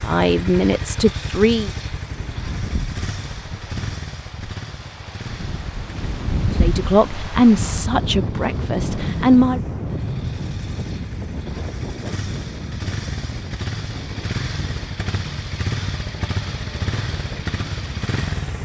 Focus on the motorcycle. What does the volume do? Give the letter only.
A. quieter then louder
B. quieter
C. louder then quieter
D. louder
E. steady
A.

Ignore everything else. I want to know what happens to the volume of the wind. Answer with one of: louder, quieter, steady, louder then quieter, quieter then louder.
louder then quieter.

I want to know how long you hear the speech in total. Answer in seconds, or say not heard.
5 s.